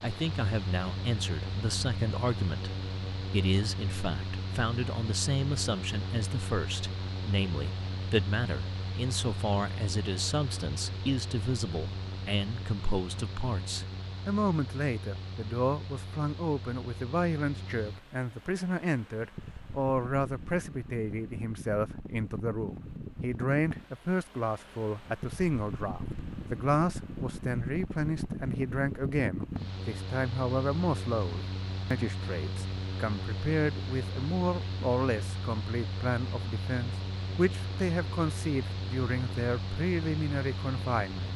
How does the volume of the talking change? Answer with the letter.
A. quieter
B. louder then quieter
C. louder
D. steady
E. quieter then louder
D.